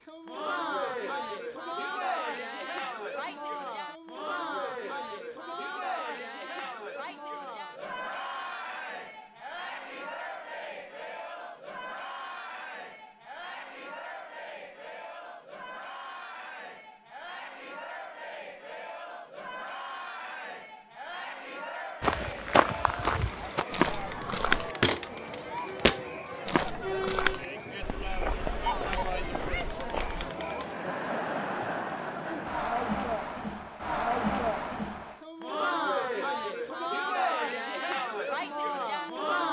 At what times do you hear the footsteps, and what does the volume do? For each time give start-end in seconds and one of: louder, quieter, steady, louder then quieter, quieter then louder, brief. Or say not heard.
22.0-30.3 quieter.